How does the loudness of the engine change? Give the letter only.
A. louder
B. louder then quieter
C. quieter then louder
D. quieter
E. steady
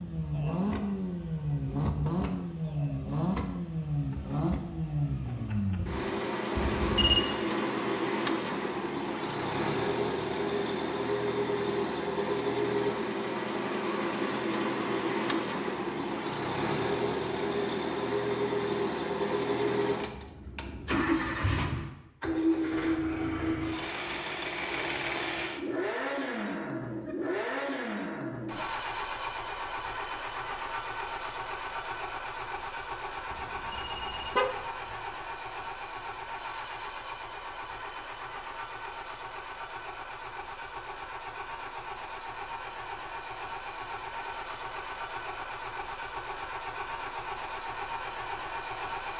D.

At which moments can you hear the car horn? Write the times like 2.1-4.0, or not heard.
6.5-7.2, 33.3-35.0.